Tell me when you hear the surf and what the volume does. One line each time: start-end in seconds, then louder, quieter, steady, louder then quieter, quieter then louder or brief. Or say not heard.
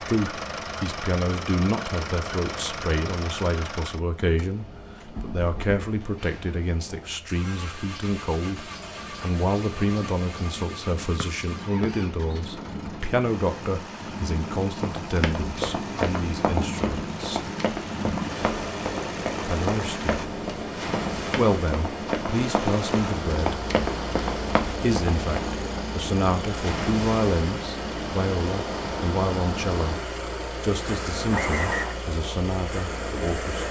0.1-33.6 louder.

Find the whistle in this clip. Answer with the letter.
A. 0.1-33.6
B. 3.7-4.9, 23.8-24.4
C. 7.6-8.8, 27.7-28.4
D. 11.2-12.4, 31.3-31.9
D.